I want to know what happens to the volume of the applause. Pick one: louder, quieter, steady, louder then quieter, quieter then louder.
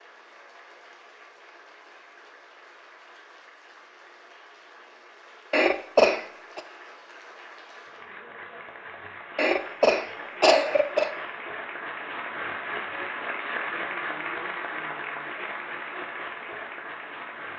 louder.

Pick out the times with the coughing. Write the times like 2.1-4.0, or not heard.
5.5-6.6, 9.3-11.1.